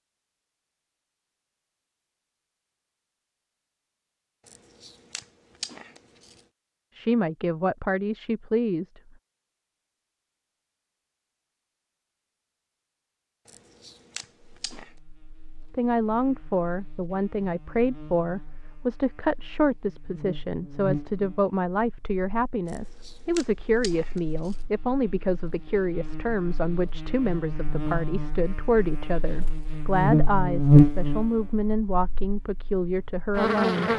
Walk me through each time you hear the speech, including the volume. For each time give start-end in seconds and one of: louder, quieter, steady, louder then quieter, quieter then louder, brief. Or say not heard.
7.0-9.0 brief
15.8-33.9 steady.